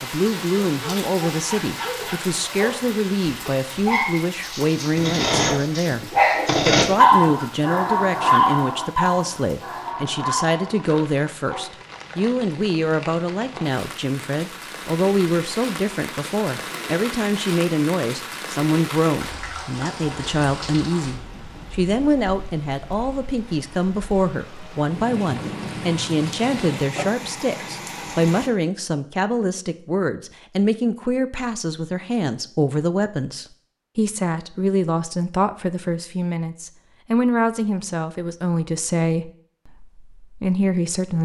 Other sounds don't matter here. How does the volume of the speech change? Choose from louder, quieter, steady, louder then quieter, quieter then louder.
steady.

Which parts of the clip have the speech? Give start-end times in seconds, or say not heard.
0.0-41.1.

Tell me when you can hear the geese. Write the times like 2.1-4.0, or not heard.
not heard.